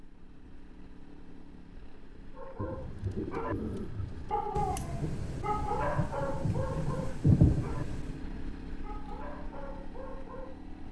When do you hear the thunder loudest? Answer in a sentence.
The loudest moment of the thunder is at 7 seconds.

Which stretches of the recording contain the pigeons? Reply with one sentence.
You can hear the pigeons from 2.5 to 4.5 s.